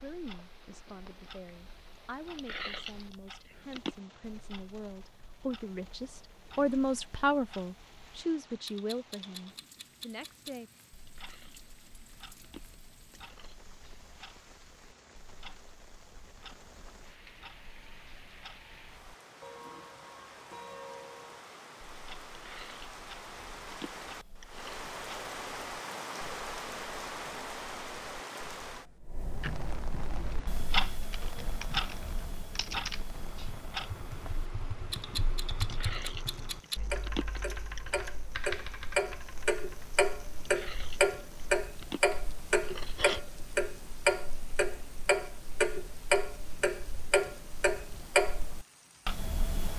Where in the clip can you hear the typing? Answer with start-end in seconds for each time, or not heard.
30.1-40.0.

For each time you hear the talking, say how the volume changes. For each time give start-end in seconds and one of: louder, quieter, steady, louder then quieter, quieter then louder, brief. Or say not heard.
0.0-10.7 louder then quieter.